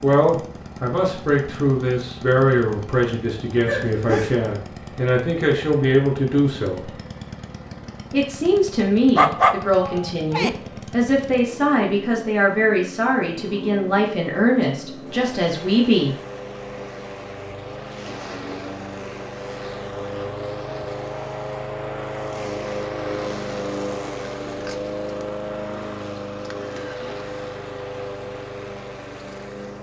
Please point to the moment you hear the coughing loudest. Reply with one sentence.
The volume of the coughing peaks at 4 seconds.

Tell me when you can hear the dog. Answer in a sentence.
The dog can be heard from 9.2 to 10.5 s.